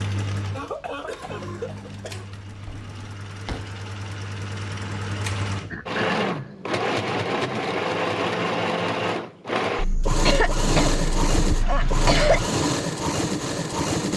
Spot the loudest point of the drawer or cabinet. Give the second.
12 s.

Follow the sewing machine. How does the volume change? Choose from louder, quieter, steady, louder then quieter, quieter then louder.
louder.